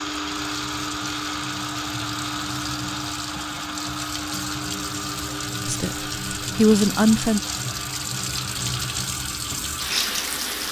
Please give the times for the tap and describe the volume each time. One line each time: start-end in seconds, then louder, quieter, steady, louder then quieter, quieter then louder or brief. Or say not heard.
0.0-10.6 louder.